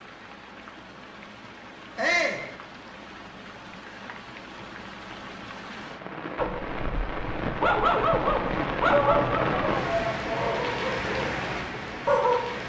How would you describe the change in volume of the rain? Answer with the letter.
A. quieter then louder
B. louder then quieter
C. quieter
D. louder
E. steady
D.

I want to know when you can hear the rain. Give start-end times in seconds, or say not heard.
0.0-12.6.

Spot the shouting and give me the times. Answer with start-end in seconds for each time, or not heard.
1.9-2.5, 8.8-10.7.